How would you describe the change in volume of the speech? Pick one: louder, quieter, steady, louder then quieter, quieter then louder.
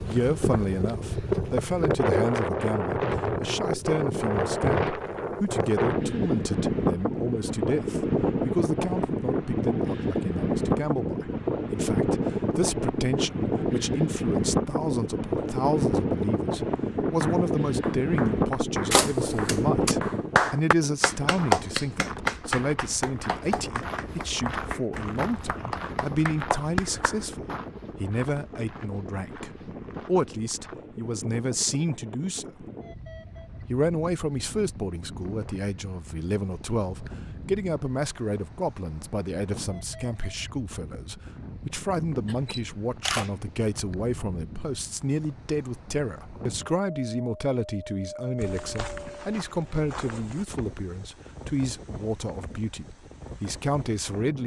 steady.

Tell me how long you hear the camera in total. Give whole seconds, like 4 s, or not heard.
2 s.